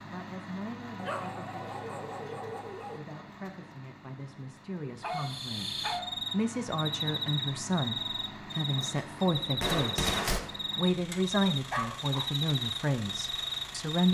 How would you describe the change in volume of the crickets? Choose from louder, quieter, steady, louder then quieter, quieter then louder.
steady.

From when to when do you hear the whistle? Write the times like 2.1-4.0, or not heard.
not heard.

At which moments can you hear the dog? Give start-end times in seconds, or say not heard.
0.9-3.0, 5.0-6.2, 11.7-12.3.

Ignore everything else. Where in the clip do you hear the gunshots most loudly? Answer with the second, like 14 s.
10 s.